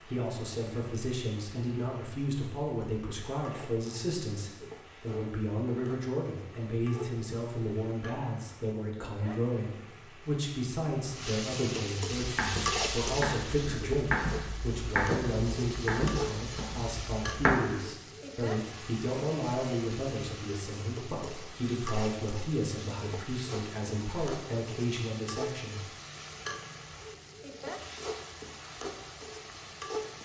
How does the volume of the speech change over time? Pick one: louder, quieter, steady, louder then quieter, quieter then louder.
steady.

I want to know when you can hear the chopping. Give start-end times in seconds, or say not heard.
12.2-17.6.